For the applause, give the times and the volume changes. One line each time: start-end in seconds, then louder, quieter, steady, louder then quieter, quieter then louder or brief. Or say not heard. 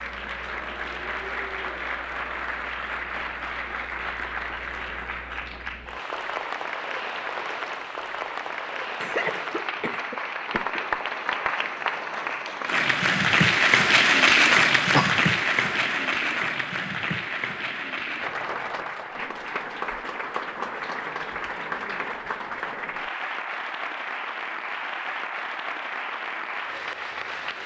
0.0-27.6 louder then quieter.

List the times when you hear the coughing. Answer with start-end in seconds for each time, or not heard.
9.0-10.8, 14.5-15.2.